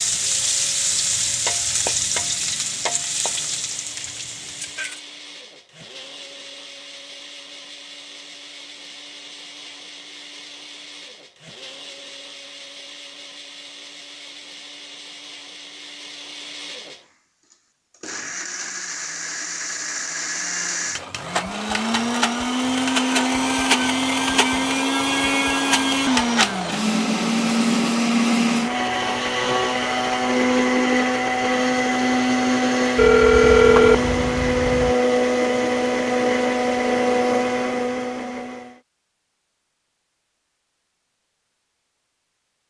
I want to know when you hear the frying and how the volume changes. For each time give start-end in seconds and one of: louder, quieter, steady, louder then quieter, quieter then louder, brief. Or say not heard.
0.0-5.0 quieter.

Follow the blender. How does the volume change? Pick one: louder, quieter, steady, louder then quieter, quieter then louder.
louder.